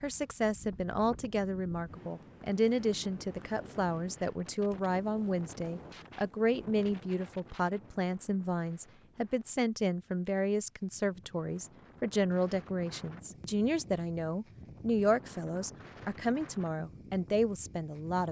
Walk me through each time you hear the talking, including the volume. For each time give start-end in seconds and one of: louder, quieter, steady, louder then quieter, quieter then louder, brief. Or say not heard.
0.0-18.2 steady.